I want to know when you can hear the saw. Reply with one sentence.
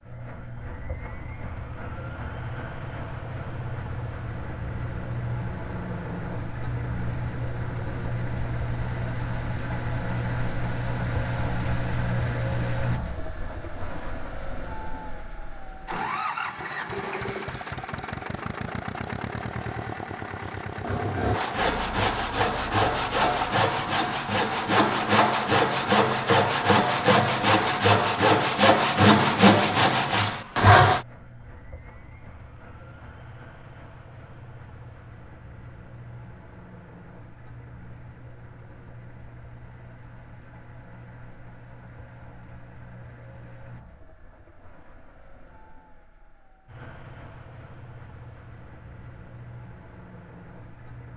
You can hear the saw from 20.8 to 31.1 s.